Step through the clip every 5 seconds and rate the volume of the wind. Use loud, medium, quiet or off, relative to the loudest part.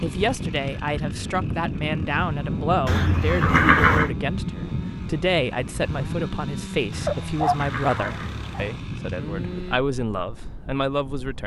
loud, medium, quiet.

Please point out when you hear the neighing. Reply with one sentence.
You can hear the neighing from 2.9 to 4.1 s and from 6.9 to 8.8 s.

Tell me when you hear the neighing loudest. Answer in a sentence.
The loudest moment of the neighing is at 4 seconds.